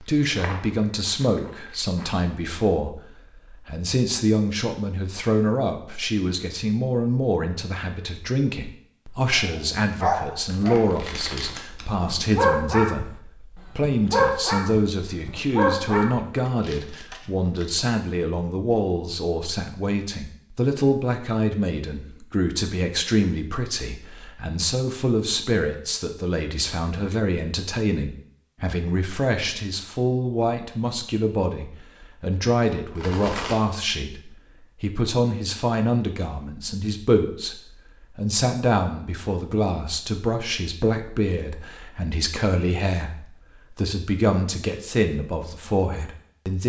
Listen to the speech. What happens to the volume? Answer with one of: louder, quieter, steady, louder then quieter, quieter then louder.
steady.